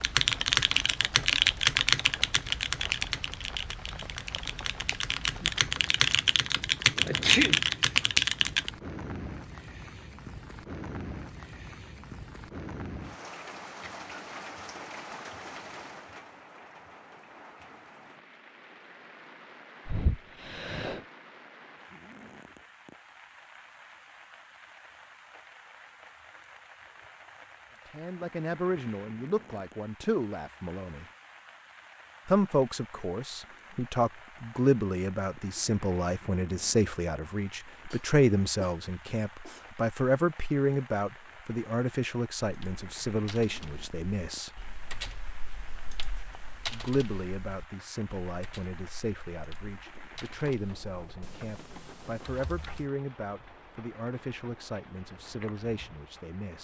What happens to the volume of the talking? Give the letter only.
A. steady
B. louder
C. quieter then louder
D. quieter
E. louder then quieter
D.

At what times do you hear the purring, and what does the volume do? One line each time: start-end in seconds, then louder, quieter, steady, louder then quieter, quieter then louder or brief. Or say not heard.
not heard.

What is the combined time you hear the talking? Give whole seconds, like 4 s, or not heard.
25 s.